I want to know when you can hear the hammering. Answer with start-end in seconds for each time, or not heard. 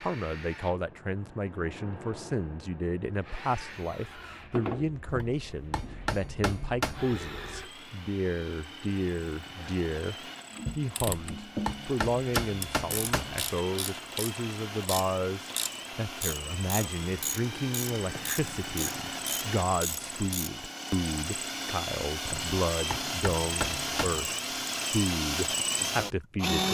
5.0-7.2, 11.0-13.6, 22.2-24.2.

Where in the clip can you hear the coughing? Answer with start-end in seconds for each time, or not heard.
not heard.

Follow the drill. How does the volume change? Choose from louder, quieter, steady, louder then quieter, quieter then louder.
louder.